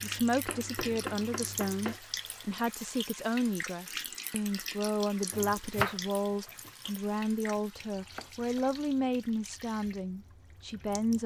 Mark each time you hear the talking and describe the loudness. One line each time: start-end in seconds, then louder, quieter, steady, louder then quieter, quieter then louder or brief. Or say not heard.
0.0-11.2 steady.